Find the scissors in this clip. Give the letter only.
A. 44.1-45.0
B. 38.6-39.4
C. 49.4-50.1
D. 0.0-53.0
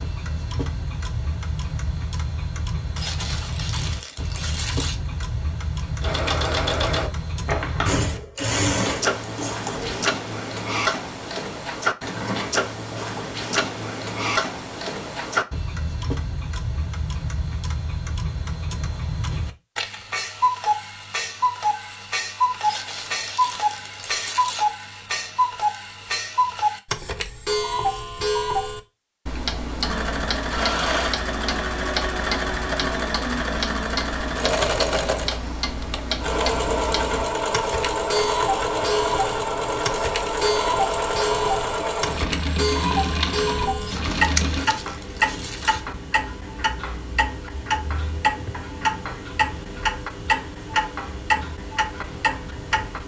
A.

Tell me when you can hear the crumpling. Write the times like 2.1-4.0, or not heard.
3.0-5.0, 22.6-24.6, 43.8-45.8.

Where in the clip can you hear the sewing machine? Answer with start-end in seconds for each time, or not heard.
6.0-10.1, 29.8-44.7.